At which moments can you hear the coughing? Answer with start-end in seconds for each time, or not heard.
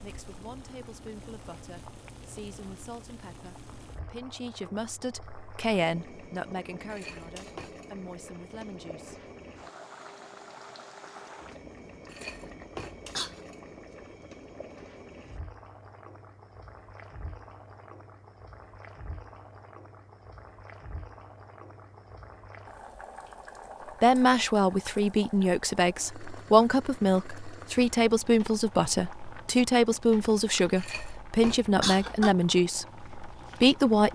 6.9-7.7, 12.1-13.4, 30.8-32.4.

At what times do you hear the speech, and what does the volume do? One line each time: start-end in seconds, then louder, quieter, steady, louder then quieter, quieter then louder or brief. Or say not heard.
0.0-9.2 louder then quieter
24.0-34.1 steady.